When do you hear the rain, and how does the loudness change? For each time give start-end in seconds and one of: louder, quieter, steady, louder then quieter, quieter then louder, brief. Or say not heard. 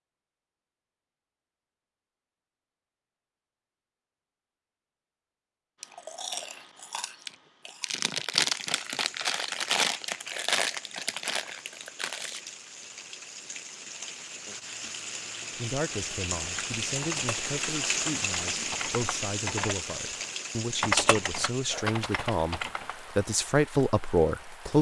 8.5-24.7 louder then quieter.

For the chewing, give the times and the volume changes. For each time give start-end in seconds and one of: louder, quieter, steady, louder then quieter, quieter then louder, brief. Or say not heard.
5.8-12.6 louder then quieter.